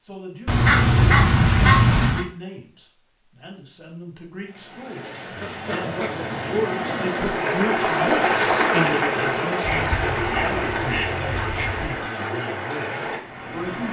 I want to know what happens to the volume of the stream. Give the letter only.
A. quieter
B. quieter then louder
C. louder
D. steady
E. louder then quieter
E.